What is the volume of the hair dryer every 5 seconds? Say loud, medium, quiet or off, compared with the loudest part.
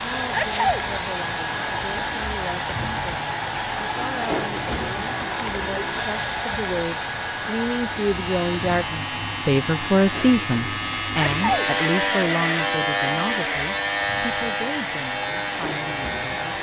loud, loud, medium, medium.